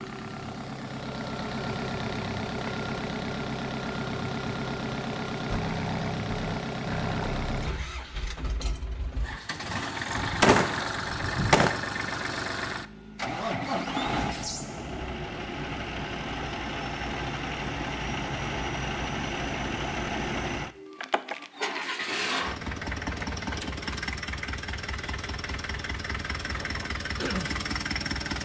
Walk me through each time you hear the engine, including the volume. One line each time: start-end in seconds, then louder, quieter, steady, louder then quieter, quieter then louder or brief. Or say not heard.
0.0-28.4 steady.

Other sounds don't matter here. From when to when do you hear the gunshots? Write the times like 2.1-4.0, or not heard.
10.2-11.7.